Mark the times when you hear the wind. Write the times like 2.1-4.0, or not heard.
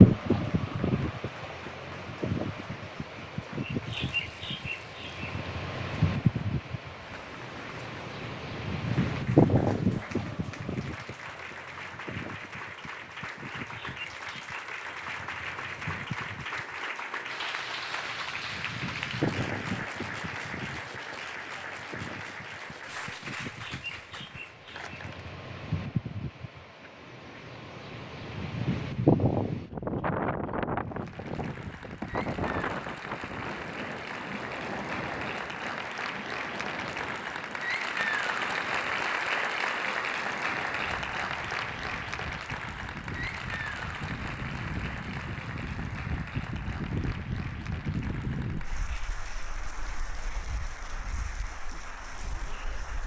0.0-53.0.